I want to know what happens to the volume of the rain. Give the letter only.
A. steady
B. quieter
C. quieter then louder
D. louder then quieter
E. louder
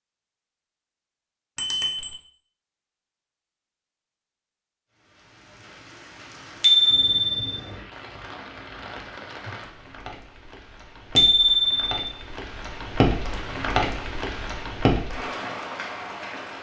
E.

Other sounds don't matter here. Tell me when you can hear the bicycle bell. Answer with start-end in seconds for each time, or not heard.
1.6-2.1, 6.6-7.5, 11.2-11.9.